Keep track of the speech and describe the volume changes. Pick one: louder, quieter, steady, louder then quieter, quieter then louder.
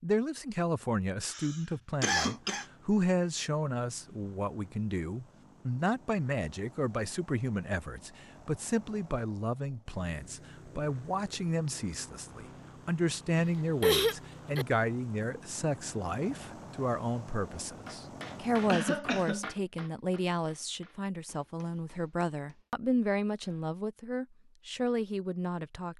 steady.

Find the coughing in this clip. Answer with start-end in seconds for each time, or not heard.
1.3-2.6, 13.4-14.7, 18.6-19.5.